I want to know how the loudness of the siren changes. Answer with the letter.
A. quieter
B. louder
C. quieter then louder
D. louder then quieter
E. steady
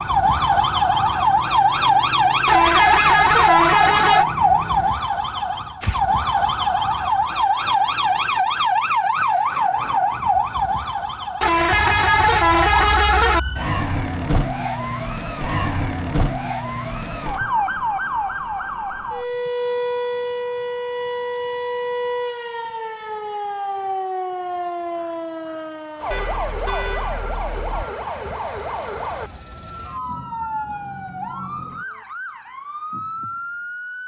A.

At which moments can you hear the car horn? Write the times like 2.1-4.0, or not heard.
2.5-4.2, 11.4-13.4, 26.1-27.9.